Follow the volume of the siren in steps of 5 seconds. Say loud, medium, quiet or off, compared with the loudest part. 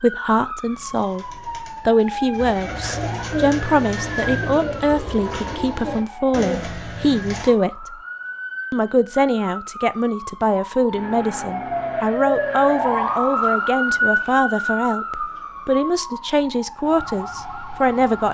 medium, medium, loud, medium.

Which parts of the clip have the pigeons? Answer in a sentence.
You can hear the pigeons from 0.6 to 7.5 s.